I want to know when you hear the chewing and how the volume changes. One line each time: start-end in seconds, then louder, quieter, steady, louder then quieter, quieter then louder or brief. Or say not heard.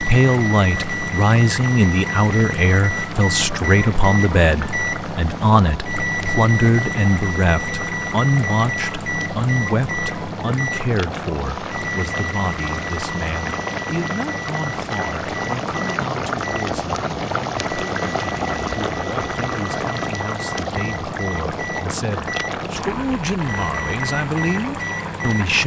not heard.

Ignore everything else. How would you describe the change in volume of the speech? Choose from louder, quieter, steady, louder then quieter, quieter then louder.
quieter then louder.